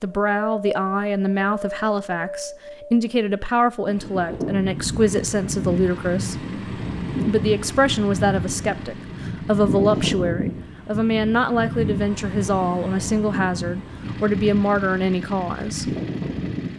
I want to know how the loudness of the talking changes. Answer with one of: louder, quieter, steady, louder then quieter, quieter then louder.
steady.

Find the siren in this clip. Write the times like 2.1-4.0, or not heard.
not heard.